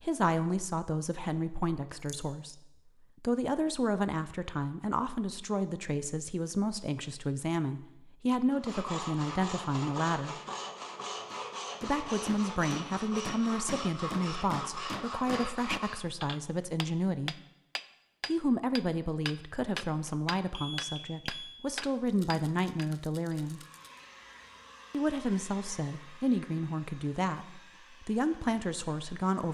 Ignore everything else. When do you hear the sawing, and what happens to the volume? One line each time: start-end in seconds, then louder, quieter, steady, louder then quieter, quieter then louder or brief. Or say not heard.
8.5-16.1 steady.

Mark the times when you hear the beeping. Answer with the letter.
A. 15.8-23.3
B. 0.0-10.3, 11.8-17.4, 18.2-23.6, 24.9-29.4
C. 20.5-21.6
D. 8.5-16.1
C.